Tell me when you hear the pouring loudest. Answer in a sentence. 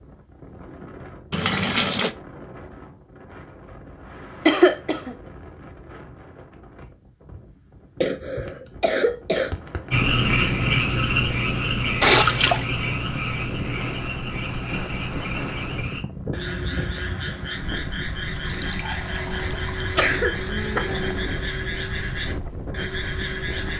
The loudest moment of the pouring is at 12 seconds.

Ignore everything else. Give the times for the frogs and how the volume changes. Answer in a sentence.
You can hear the frogs from 9.9 to 23.7 s, getting quieter.